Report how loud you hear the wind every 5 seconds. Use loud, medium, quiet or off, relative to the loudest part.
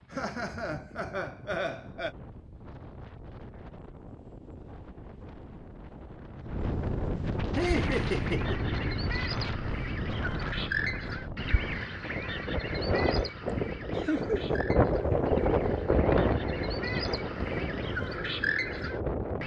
quiet, medium, loud, loud.